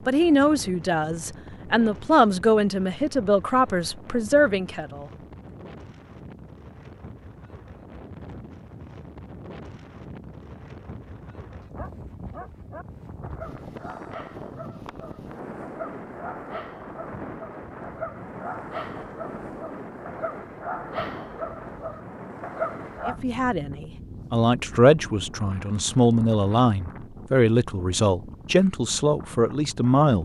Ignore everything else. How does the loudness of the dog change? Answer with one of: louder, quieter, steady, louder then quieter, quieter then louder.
louder.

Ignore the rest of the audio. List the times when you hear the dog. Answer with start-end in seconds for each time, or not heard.
11.8-23.2.